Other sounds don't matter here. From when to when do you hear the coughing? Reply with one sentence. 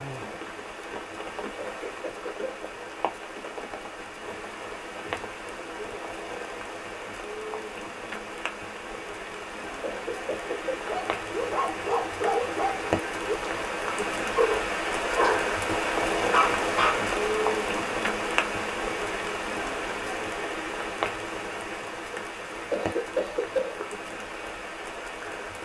The coughing can be heard from 1.6 to 2.5 s, from 9.8 to 10.8 s and from 22.7 to 23.9 s.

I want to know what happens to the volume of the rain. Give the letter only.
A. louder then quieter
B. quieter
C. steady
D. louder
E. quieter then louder
A.